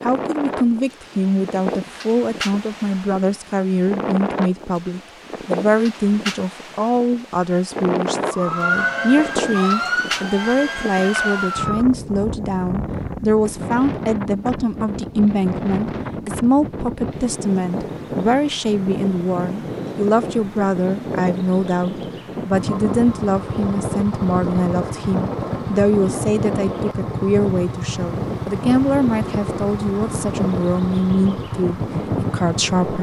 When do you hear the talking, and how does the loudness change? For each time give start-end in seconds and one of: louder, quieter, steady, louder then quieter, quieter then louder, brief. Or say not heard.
0.0-32.9 steady.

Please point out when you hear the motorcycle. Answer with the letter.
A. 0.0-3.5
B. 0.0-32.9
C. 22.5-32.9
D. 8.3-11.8
C.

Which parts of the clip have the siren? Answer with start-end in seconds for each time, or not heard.
8.3-11.8.